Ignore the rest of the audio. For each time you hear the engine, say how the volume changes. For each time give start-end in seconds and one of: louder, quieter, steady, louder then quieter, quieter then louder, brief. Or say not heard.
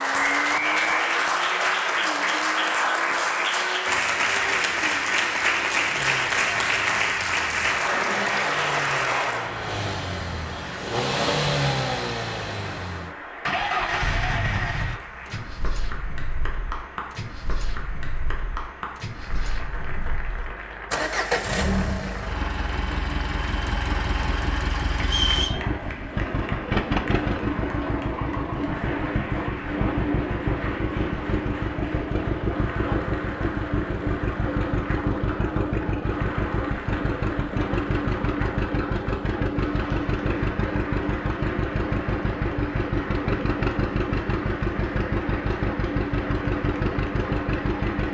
0.0-48.1 louder.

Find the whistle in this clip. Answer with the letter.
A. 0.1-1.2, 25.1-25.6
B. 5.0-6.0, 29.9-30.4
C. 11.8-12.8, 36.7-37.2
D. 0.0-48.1
A.